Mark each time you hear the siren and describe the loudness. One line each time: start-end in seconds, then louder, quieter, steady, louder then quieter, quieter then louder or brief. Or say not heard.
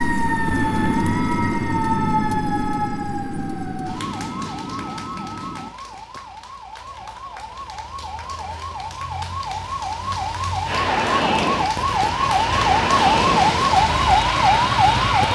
0.0-15.3 quieter then louder.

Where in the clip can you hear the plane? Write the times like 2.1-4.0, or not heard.
0.0-5.8, 10.7-15.3.